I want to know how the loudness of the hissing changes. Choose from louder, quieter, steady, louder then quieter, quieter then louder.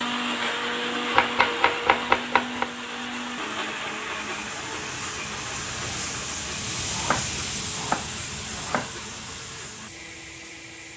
louder then quieter.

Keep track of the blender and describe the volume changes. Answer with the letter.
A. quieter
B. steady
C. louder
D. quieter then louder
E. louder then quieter
A.